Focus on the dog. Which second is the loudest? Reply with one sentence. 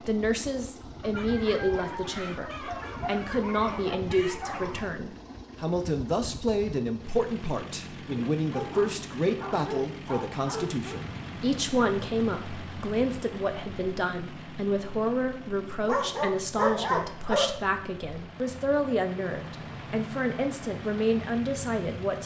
The volume of the dog peaks at 17 seconds.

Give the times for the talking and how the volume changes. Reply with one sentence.
The talking can be heard from 0.1 to 22.2 s, at a steady volume.